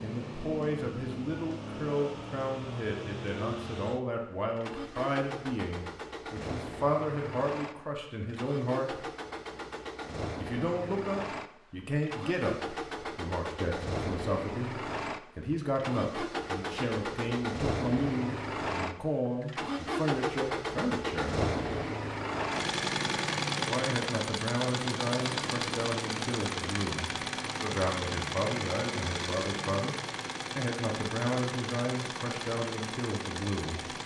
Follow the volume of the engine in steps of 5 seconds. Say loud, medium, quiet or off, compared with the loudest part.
medium, medium, medium, loud, loud, loud, medium.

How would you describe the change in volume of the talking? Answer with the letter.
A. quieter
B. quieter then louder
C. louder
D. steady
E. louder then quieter
D.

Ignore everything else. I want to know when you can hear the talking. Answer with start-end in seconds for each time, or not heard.
0.0-9.1, 10.3-21.4, 23.6-29.9, 30.6-34.0.